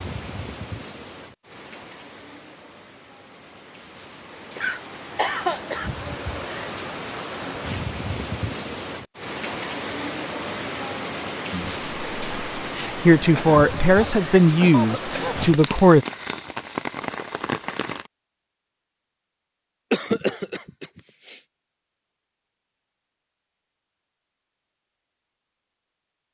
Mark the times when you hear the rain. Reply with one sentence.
The rain can be heard from 0.0 to 18.1 s.